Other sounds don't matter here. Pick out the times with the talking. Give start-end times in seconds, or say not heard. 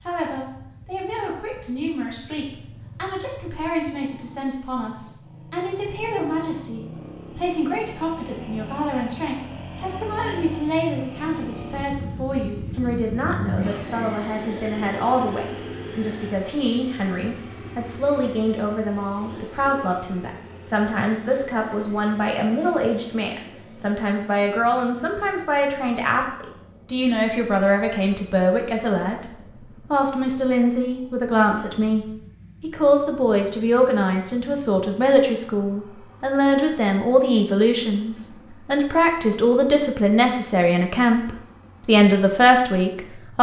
0.0-29.2, 29.9-43.3.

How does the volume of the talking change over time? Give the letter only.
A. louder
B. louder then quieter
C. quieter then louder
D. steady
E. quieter
A.